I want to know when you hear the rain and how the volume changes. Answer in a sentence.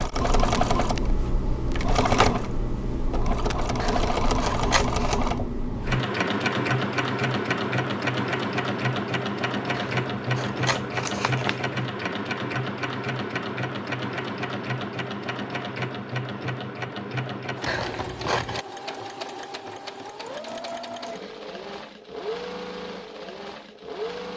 The rain can't be heard in this clip.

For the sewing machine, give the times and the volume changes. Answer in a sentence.
You can hear the sewing machine from 0.0 to 24.3 s, getting quieter.